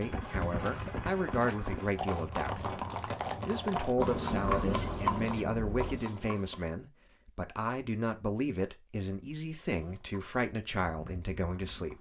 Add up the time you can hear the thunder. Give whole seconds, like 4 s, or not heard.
2 s.